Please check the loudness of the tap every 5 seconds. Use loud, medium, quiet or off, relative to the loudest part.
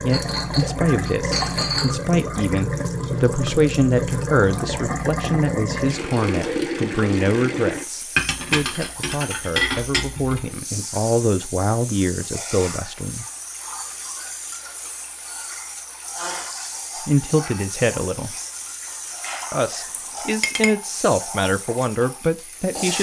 loud, loud, medium, medium, medium.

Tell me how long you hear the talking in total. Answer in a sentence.
The talking can be heard for 18 seconds in total.